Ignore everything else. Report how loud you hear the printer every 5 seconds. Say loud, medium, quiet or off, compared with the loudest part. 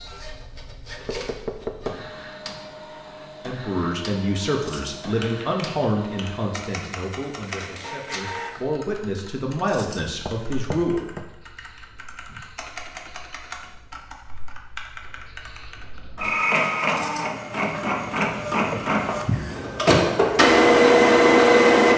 quiet, quiet, quiet, medium, loud.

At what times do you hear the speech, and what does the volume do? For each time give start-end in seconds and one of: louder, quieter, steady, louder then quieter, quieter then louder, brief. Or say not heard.
3.4-11.1 quieter then louder.